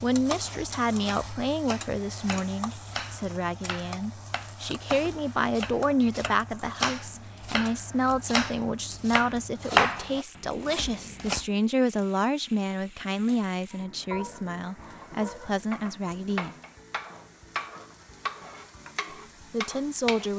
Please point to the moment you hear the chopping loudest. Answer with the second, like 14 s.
10 s.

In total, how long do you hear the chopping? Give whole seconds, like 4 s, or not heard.
11 s.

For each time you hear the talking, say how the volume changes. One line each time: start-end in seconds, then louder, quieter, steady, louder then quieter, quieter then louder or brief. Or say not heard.
0.0-16.6 steady
19.5-20.3 brief.